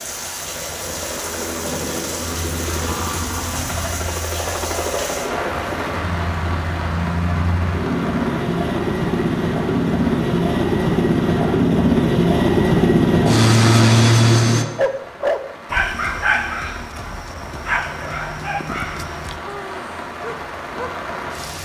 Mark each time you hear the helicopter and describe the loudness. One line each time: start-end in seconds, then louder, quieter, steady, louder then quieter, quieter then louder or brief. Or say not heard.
0.0-14.7 louder.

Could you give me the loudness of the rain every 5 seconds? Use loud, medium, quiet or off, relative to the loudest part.
loud, loud, medium, medium, loud.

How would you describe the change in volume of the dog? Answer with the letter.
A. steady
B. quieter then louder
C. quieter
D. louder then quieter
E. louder
C.